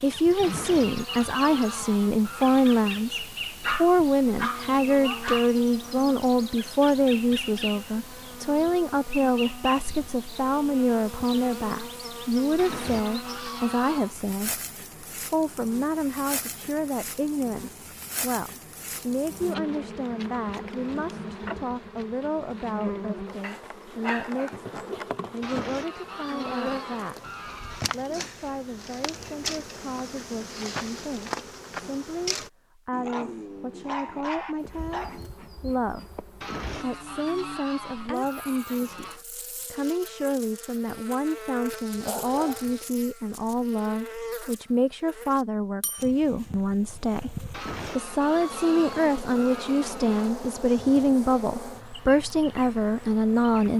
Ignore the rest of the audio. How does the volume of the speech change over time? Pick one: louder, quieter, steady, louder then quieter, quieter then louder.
quieter then louder.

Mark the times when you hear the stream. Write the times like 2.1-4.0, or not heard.
not heard.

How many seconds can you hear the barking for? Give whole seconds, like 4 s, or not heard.
6 s.